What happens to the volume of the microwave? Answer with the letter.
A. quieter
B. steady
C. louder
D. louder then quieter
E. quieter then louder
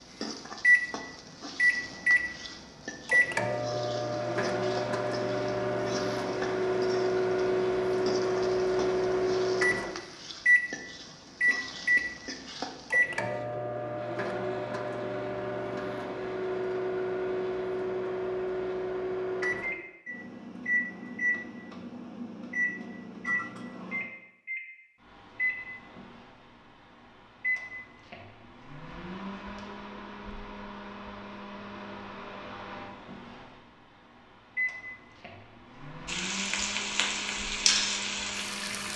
A.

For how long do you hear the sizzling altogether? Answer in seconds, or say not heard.
16 s.